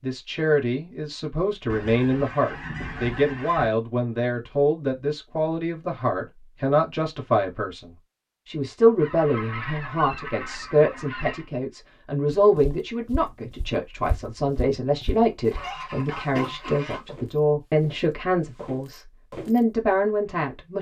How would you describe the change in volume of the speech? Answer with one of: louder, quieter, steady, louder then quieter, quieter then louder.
steady.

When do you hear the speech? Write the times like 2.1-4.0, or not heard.
0.0-20.7.